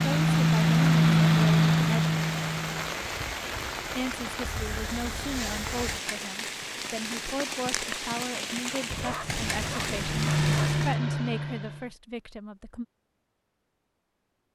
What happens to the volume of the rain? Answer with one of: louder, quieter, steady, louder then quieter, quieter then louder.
steady.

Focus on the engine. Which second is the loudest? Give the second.
1 s.